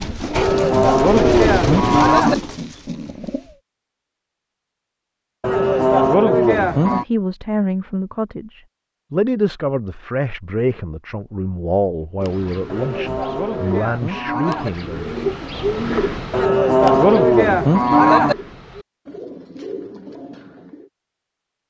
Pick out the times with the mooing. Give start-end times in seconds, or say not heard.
0.3-2.4, 5.4-7.0, 12.7-14.7, 16.3-18.4.